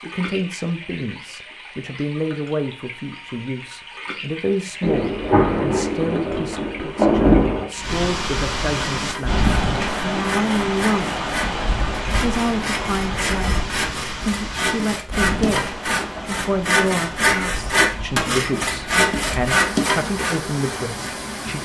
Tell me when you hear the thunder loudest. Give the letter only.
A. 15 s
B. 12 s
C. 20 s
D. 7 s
D.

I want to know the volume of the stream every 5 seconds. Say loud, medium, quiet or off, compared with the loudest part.
medium, loud, loud, medium, loud.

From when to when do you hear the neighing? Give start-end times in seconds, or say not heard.
not heard.